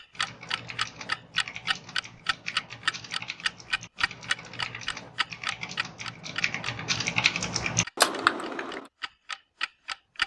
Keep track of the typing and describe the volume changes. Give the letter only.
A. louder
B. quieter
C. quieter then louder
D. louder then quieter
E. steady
A.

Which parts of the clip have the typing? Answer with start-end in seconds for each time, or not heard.
0.1-8.9.